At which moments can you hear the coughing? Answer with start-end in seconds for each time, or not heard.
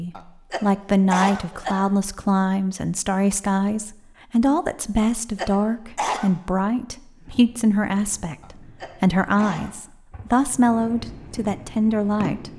0.1-1.9, 5.0-6.3, 8.4-9.7.